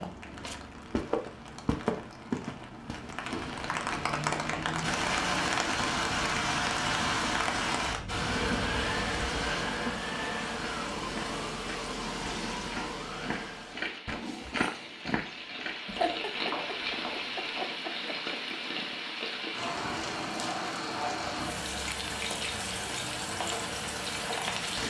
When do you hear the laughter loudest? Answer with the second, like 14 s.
16 s.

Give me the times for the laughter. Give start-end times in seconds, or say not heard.
15.8-18.4.